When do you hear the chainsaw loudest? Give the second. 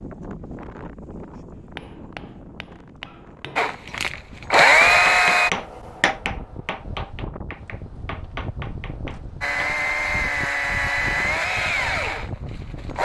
5 s.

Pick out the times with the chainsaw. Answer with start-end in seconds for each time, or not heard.
3.5-5.5, 9.4-13.0.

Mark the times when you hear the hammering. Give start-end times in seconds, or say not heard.
1.6-9.8.